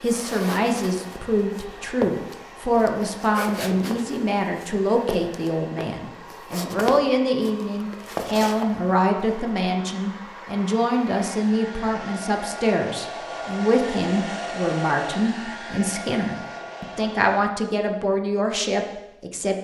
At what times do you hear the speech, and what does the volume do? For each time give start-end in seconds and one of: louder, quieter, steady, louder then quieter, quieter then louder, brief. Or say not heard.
0.0-19.5 steady.